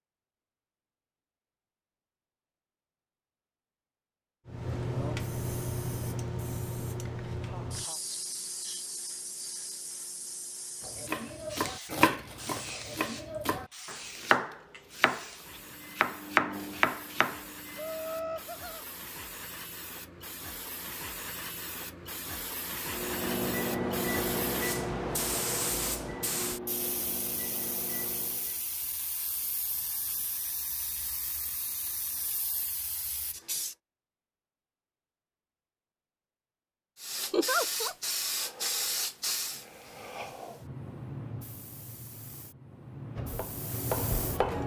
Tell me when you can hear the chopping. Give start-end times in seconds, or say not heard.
10.8-17.4, 43.1-44.6.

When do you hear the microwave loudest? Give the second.
24 s.